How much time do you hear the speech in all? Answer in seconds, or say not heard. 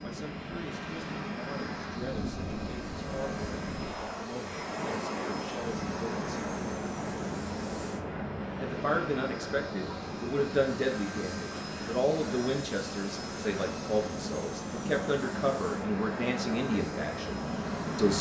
16 s.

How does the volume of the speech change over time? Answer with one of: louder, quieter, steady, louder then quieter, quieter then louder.
louder.